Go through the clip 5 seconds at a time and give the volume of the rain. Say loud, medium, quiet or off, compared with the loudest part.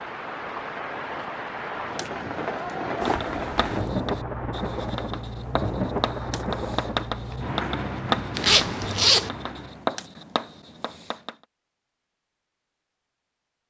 loud, loud, off.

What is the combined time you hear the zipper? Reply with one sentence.
The zipper can be heard for 2 seconds in total.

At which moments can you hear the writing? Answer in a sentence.
The writing can be heard from 3.0 to 11.3 s.